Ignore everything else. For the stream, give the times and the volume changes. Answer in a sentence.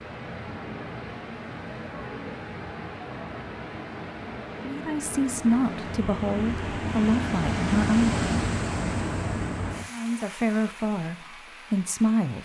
You can hear the stream from 0.0 to 12.4 s, getting louder then quieter.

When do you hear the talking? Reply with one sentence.
The talking can be heard from 4.7 to 8.2 s and from 9.9 to 12.4 s.